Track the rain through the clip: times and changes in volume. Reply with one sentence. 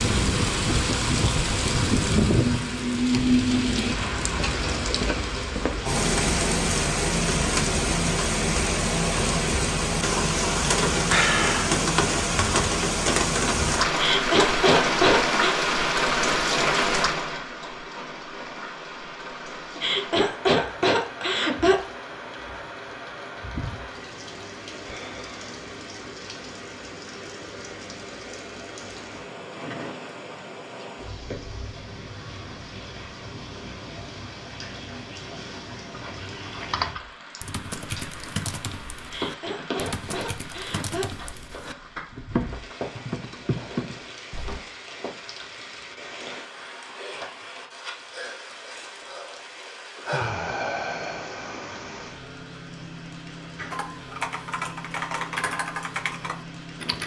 The rain can be heard from 0.0 to 57.0 s, getting quieter.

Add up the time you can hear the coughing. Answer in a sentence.
You can hear the coughing for 6 seconds altogether.